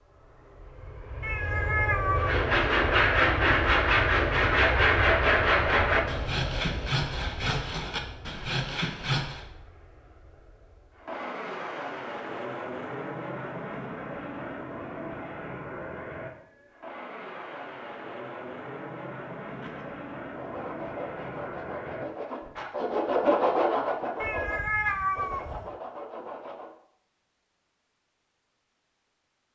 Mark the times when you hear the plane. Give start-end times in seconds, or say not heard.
0.0-22.5.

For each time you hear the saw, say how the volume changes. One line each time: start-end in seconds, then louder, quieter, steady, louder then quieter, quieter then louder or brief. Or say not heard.
2.1-9.4 quieter
19.5-26.8 louder then quieter.